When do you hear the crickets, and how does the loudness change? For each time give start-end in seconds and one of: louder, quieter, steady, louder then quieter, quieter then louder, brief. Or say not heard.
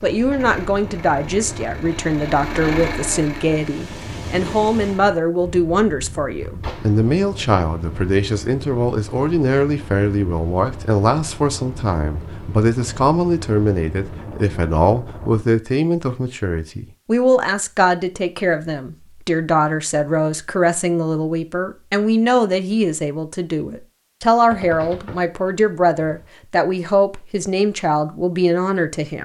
not heard.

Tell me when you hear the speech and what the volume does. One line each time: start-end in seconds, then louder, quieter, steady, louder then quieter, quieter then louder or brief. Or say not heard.
0.0-29.1 steady.